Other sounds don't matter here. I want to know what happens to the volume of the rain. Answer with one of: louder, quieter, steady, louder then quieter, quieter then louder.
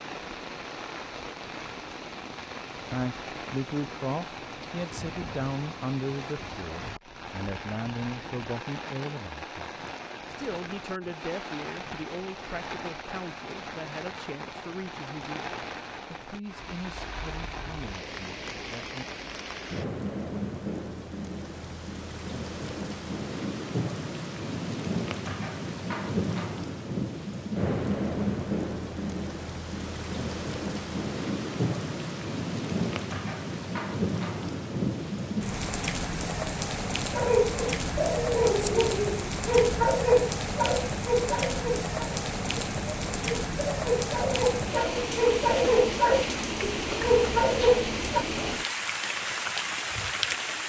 louder.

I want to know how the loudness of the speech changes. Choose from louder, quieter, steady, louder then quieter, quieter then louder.
quieter.